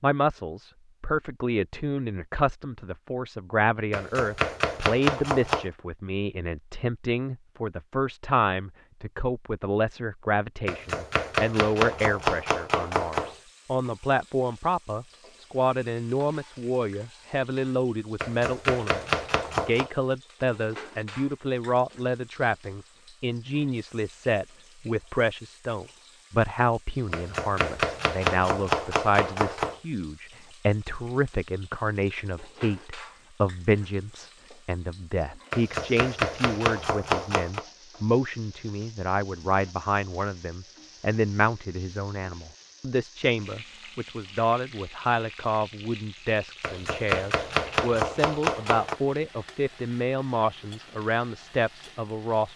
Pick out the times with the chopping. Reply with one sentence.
You can hear the chopping from 3.9 to 5.7 s, from 10.7 to 13.3 s, from 18.2 to 19.9 s, from 27.1 to 29.8 s, from 35.5 to 37.6 s and from 46.6 to 49.0 s.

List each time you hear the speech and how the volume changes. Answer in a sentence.
The speech can be heard from 0.0 to 52.5 s, at a steady volume.